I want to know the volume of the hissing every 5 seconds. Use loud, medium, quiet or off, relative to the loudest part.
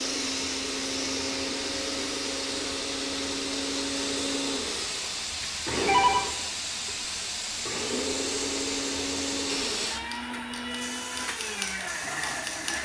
loud, loud, medium.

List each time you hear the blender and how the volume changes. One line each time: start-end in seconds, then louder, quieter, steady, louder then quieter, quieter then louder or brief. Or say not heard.
0.0-12.7 steady.